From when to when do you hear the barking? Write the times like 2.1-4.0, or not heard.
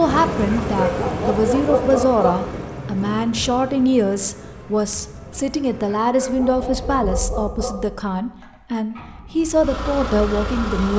0.7-2.5, 6.0-7.8.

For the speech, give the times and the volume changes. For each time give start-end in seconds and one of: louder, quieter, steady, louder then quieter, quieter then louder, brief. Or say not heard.
0.0-10.9 steady.